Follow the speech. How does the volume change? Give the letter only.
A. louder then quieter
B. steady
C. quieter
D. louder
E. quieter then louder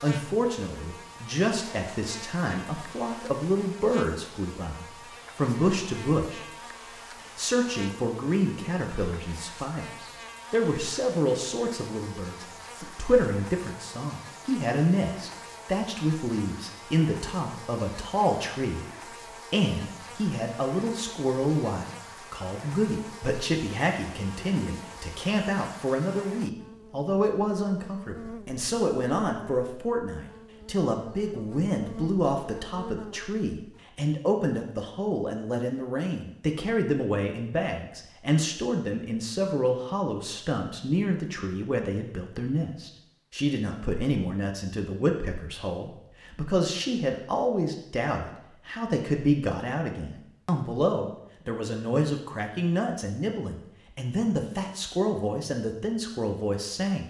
B.